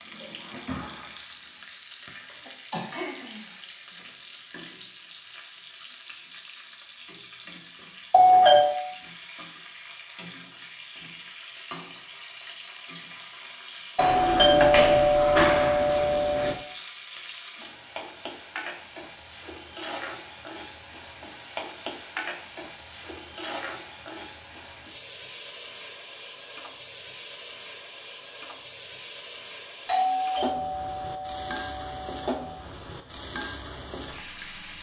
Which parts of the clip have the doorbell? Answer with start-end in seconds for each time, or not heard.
8.1-8.8, 13.9-16.6, 29.9-32.4.